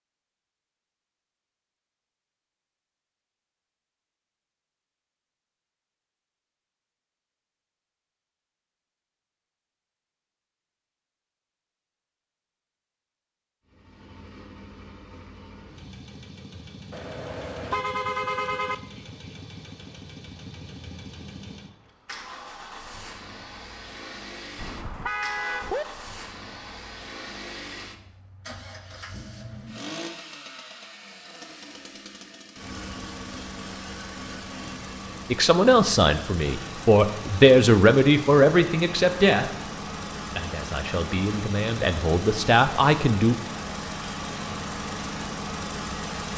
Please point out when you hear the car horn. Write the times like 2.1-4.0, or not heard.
16.9-18.8, 24.6-25.9.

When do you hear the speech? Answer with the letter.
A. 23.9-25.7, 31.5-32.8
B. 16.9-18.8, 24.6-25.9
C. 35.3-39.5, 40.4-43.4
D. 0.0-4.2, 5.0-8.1
C.